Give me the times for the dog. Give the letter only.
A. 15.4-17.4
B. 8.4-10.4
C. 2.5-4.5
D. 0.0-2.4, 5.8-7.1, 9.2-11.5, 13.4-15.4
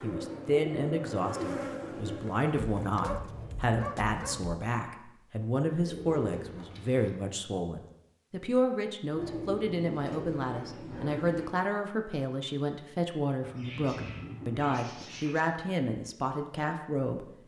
C.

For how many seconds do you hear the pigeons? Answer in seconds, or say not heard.
8 s.